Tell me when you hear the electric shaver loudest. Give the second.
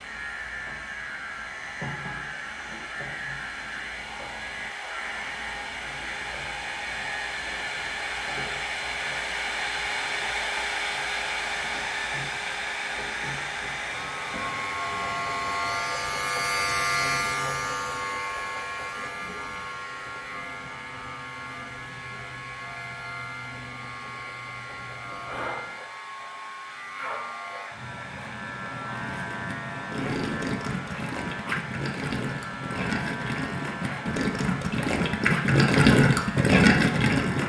17 s.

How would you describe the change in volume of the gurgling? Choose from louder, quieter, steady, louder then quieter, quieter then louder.
louder.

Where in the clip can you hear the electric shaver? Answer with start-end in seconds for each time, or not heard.
0.0-37.4.